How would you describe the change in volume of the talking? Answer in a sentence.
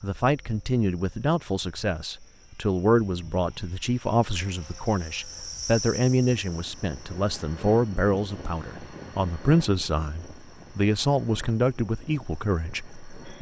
The loudness of the talking stays about the same.